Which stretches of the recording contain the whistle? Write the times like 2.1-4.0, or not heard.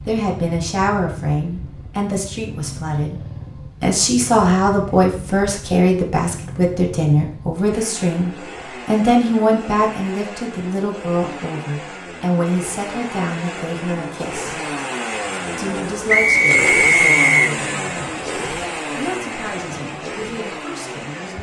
16.1-17.5.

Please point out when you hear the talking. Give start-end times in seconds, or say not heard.
0.1-3.1, 3.8-14.6, 15.6-21.3.